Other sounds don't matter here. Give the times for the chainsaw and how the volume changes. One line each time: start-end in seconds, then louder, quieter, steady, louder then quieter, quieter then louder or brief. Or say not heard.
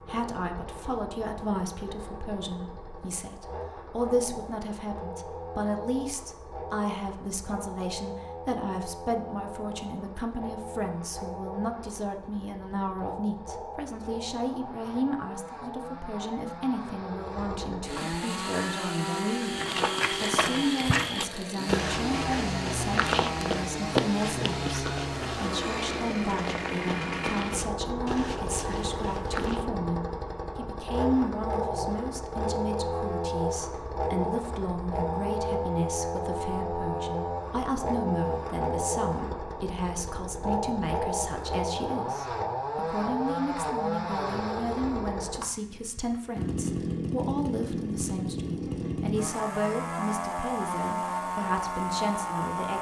0.0-52.7 louder.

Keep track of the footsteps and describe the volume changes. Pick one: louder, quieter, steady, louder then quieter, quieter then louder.
quieter.